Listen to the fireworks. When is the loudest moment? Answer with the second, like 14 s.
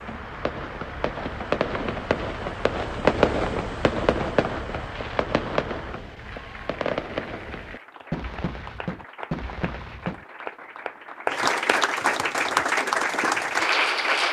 3 s.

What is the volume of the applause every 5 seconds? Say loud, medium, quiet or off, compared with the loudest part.
quiet, quiet, loud.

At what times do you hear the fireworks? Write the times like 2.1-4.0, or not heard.
0.0-10.2.